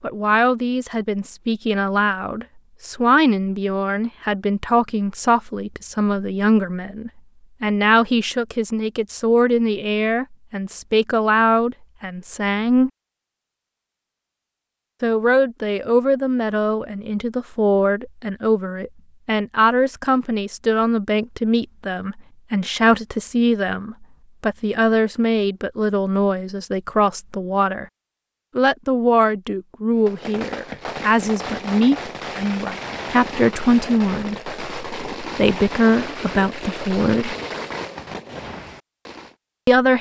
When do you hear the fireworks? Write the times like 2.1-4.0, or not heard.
29.9-39.4.